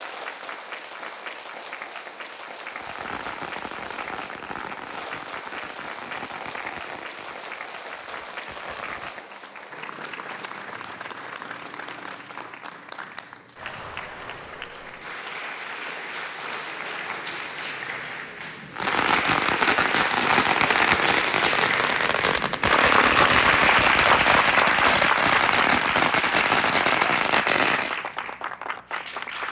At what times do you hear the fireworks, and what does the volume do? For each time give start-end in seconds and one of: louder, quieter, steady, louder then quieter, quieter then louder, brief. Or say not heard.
2.7-9.2 quieter
18.7-27.9 steady.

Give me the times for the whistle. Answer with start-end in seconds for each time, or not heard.
not heard.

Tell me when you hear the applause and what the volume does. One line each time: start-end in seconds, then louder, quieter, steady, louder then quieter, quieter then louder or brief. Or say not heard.
0.0-29.4 louder.